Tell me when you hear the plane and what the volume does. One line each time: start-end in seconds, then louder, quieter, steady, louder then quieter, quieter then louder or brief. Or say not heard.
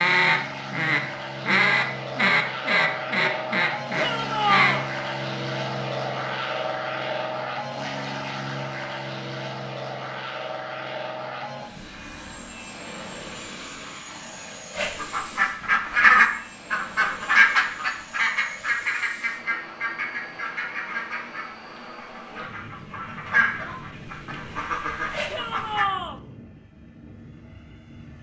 0.0-28.1 quieter.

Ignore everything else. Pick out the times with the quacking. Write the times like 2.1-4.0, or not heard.
0.0-4.8, 14.8-25.9.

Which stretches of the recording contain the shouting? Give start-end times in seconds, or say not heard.
4.0-4.8, 25.3-26.2.